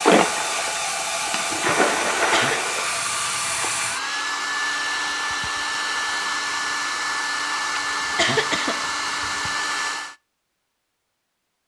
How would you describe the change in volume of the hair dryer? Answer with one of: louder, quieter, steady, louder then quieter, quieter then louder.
steady.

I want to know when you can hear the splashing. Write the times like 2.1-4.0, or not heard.
0.0-3.6.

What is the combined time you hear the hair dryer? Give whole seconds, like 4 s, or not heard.
10 s.